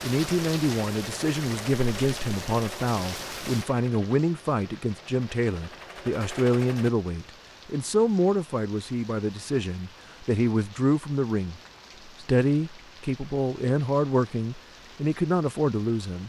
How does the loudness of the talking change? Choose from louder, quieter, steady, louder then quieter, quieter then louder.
steady.